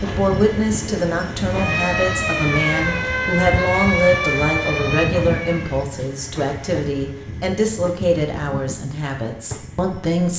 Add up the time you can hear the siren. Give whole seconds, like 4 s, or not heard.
4 s.